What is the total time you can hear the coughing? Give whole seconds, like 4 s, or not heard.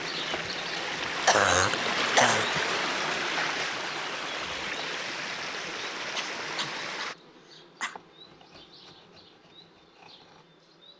3 s.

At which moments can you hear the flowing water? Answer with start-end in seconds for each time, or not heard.
0.0-7.2.